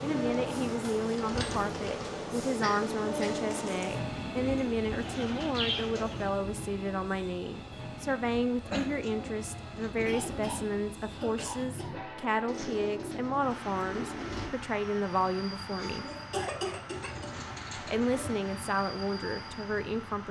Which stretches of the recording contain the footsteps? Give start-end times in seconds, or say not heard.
not heard.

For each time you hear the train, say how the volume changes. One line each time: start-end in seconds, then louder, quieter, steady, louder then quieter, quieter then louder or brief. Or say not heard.
0.0-20.2 quieter.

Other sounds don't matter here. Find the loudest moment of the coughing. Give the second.
17 s.